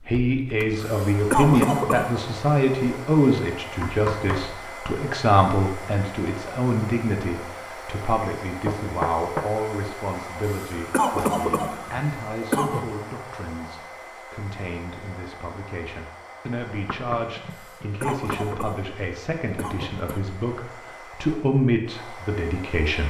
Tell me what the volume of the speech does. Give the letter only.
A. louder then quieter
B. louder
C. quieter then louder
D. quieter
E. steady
C.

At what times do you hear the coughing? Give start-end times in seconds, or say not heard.
0.8-2.2, 10.4-12.9, 17.5-20.2.